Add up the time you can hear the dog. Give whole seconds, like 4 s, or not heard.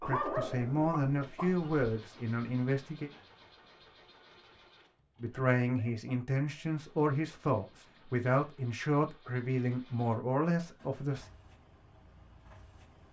2 s.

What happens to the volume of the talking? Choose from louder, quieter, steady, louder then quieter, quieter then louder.
steady.